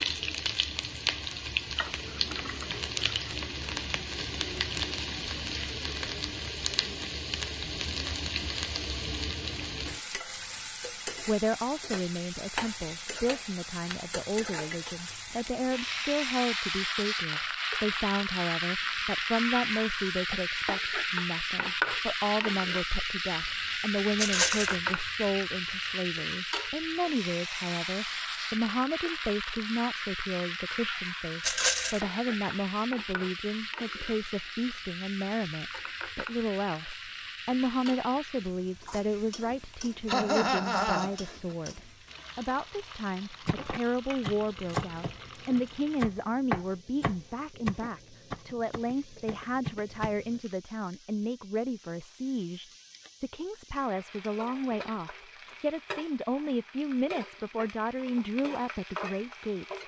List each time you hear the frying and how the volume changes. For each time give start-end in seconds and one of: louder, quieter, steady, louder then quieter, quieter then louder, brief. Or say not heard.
0.0-59.8 quieter.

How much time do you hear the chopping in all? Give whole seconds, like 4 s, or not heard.
7 s.